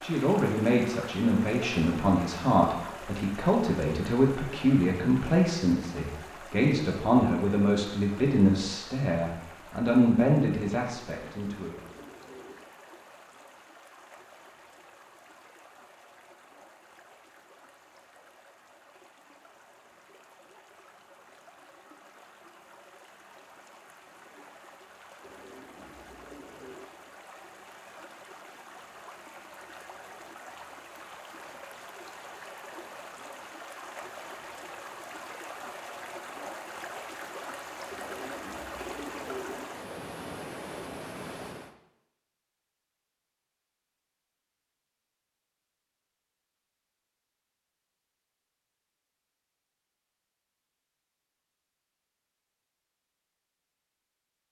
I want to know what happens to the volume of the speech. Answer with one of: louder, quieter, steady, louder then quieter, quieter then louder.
steady.